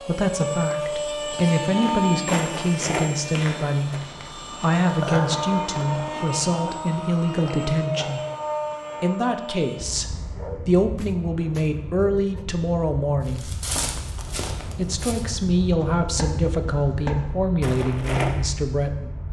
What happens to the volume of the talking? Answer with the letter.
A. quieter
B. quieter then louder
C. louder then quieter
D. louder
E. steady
E.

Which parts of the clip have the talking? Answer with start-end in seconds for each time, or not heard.
0.1-8.2, 9.0-13.5, 14.8-19.1.